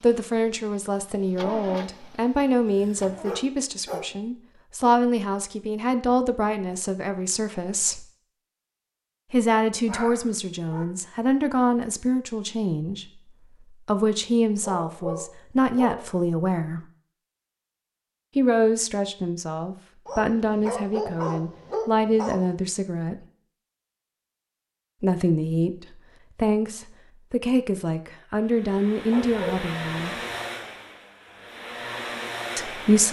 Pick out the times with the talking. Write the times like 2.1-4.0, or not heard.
0.0-8.1, 9.3-16.9, 18.4-23.2, 25.0-30.2, 32.5-33.0.